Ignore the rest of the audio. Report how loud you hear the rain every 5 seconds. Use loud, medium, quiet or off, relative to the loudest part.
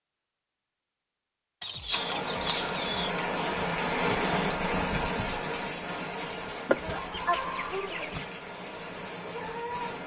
loud, medium.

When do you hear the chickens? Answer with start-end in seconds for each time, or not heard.
1.6-3.1, 6.7-8.2.